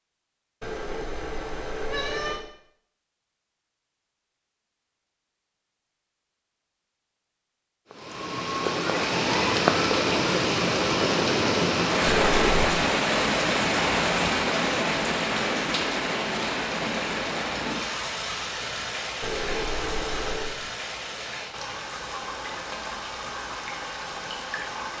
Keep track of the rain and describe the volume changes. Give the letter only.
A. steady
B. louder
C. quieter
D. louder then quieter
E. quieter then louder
C.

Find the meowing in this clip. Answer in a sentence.
You can hear the meowing from 0.6 to 2.5 s, from 12.1 to 12.8 s and from 19.2 to 20.6 s.